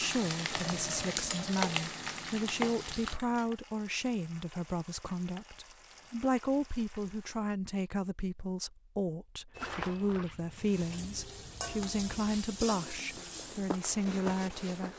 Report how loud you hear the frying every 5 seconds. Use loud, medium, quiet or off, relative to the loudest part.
loud, quiet, medium.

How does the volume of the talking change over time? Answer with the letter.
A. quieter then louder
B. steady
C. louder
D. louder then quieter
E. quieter
B.